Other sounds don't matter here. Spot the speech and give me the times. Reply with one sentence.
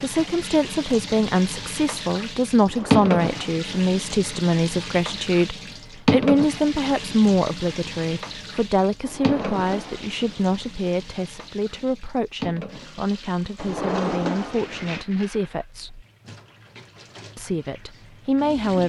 You can hear the speech from 0.0 to 16.1 s and from 17.4 to 18.8 s.